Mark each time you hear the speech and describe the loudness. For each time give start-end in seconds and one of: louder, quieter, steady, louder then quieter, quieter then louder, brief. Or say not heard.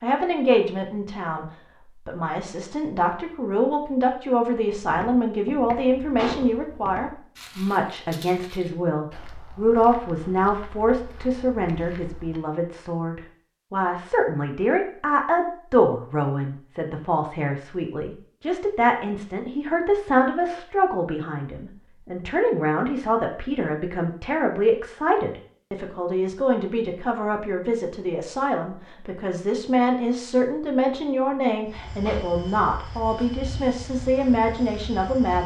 0.0-1.4 brief
2.0-35.4 steady.